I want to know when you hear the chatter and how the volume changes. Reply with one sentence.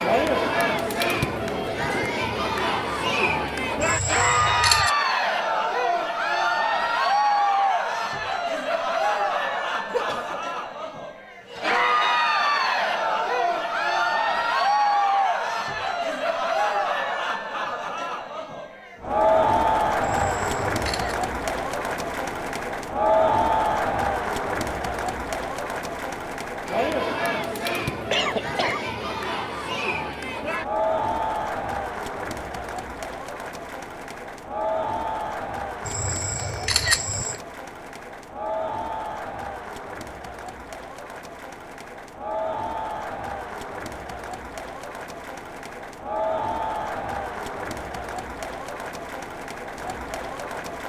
You can hear the chatter from 0.0 to 50.8 s, getting quieter.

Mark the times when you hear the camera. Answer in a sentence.
You can hear the camera from 3.8 to 4.9 s, from 20.0 to 21.1 s and from 35.9 to 37.4 s.